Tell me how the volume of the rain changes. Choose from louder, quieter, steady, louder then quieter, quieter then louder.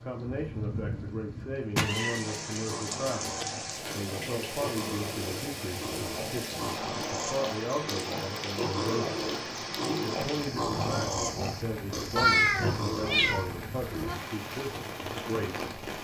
steady.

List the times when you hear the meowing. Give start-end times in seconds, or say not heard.
1.8-3.5, 12.2-14.2.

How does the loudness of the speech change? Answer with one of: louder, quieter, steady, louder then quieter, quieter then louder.
steady.